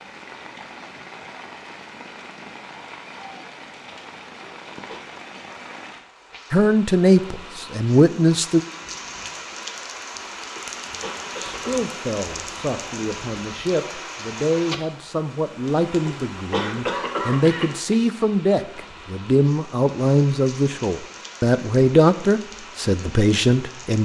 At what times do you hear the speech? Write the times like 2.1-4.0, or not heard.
6.5-8.6, 11.4-23.9.